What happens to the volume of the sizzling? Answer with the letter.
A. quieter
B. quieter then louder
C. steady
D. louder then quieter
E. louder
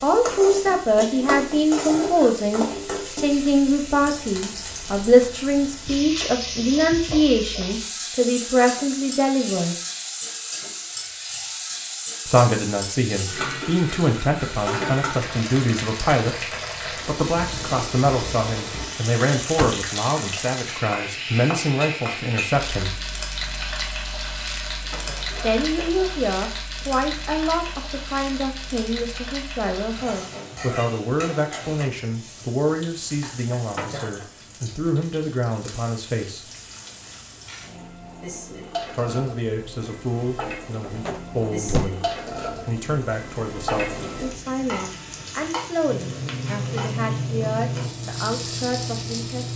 B.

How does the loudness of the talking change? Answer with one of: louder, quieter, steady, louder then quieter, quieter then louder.
quieter.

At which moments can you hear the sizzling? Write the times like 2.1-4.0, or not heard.
0.0-49.5.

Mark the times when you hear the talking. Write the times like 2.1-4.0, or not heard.
0.0-9.8, 12.2-23.0, 25.4-36.5, 38.9-49.5.